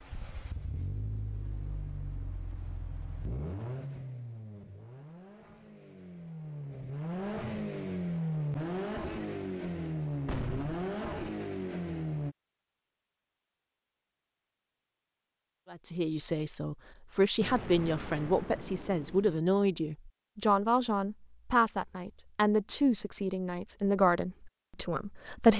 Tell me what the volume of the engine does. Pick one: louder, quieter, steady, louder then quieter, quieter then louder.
louder.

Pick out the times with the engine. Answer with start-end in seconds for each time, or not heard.
0.0-12.3.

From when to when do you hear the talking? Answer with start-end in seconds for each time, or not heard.
15.7-25.5.